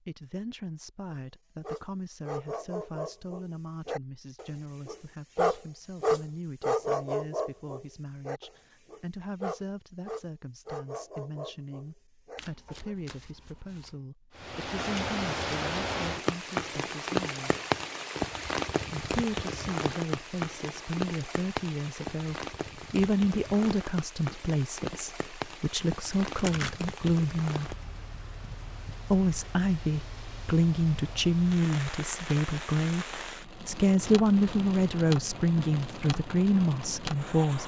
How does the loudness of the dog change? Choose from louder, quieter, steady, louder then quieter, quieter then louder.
louder then quieter.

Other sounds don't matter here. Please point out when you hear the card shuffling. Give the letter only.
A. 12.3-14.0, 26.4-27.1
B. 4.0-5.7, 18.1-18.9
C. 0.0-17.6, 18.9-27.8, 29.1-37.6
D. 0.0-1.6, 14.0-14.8
A.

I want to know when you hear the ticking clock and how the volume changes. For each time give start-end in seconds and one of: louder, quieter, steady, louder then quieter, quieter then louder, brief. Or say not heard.
not heard.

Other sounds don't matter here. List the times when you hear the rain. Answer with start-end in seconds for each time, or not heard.
14.3-37.6.